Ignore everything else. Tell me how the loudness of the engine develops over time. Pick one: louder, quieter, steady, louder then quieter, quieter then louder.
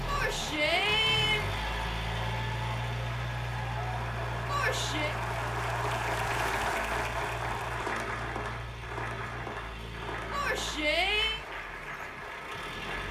quieter.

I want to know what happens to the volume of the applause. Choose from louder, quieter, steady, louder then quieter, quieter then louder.
louder then quieter.